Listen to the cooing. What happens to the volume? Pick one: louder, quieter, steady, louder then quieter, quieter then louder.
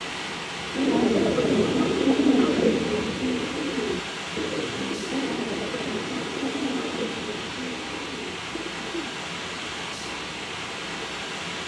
quieter.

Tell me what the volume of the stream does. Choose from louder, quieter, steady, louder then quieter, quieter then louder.
steady.